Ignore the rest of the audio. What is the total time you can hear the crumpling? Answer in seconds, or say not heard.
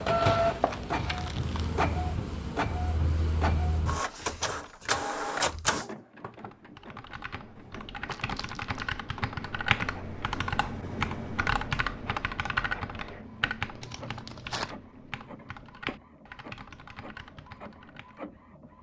3 s.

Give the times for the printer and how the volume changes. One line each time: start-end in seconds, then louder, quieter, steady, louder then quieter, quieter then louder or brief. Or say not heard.
0.0-18.7 quieter.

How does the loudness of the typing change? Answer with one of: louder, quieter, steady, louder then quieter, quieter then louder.
louder then quieter.